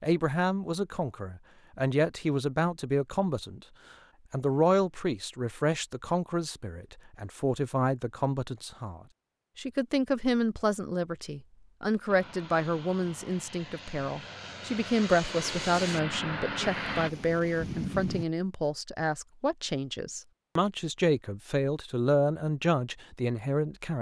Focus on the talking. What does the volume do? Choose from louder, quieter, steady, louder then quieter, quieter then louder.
steady.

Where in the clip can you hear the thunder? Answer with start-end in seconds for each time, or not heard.
16.6-18.2.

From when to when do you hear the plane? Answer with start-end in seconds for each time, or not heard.
12.1-17.1.